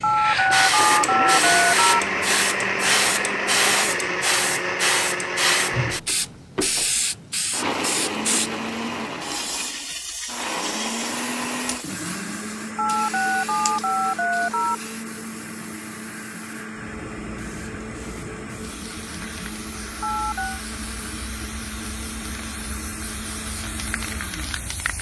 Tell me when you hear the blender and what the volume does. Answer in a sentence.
You can hear the blender from 0.0 to 24.9 s, getting quieter.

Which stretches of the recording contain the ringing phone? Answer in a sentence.
The ringing phone can be heard from 0.0 to 2.0 s, from 12.8 to 14.8 s and from 20.0 to 20.6 s.